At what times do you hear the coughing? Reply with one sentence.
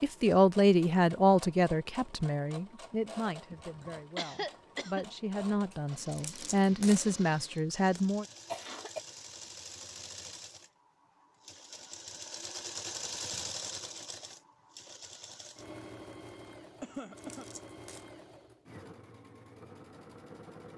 The coughing can be heard from 3.5 to 5.0 s, from 8.0 to 9.0 s and from 16.8 to 17.4 s.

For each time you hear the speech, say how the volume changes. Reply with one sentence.
The speech can be heard from 0.0 to 8.2 s, getting quieter then louder.